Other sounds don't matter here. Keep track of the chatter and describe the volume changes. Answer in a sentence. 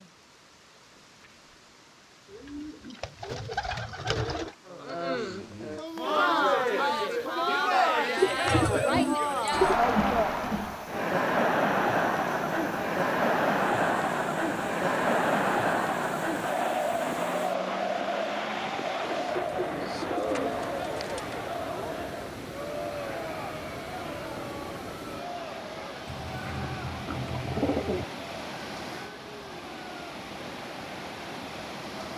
The volume of the chatter goes down.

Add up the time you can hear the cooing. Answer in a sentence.
You can hear the cooing for 8 seconds altogether.